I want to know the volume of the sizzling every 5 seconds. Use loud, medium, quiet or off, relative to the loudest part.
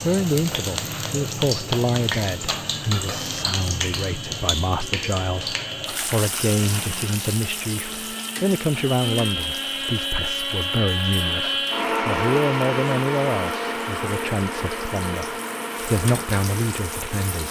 loud, medium, quiet, medium.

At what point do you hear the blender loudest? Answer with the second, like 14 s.
12 s.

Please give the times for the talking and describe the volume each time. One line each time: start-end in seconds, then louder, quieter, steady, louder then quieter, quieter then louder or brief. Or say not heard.
0.0-17.4 steady.